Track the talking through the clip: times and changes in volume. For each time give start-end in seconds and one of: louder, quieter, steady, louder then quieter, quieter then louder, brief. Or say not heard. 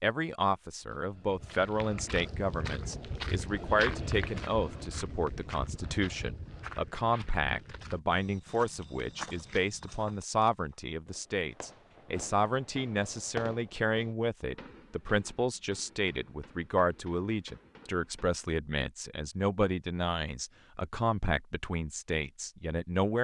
0.0-23.2 steady.